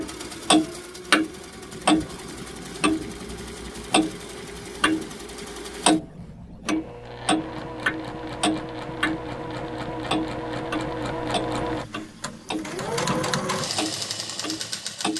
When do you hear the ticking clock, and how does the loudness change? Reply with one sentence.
You can hear the ticking clock from 0.0 to 5.1 s, getting quieter then louder; and from 5.8 to 15.1 s, getting quieter.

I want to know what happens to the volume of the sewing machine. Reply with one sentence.
The loudness of the sewing machine goes up.